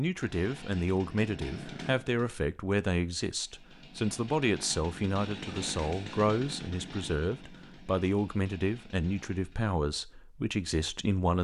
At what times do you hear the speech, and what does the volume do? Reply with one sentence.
You can hear the speech from 0.0 to 11.3 s, at a steady volume.